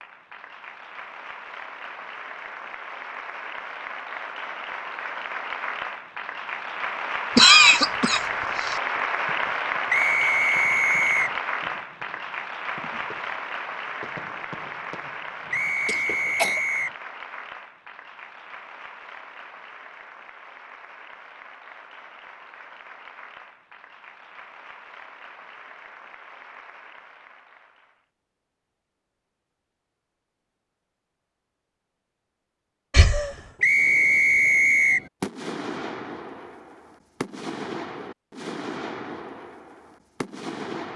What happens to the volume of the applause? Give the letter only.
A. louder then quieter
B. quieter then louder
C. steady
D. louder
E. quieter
A.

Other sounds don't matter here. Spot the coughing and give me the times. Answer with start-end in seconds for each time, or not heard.
7.3-8.8, 15.8-16.6, 32.9-33.4.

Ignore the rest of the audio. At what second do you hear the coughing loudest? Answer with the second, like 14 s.
8 s.